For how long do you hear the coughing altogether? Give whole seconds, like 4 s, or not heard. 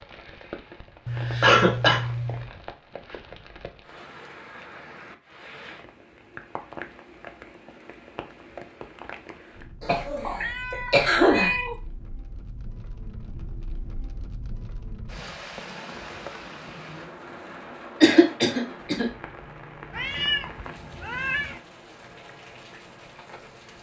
3 s.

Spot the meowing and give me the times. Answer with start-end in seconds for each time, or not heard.
1.1-2.5, 10.2-11.8, 19.9-21.6.